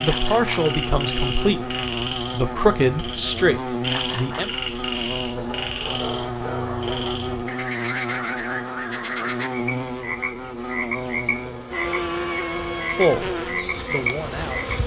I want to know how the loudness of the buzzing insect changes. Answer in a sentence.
The volume of the buzzing insect stays about the same.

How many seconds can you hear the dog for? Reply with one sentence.
The dog can be heard for 2 seconds in total.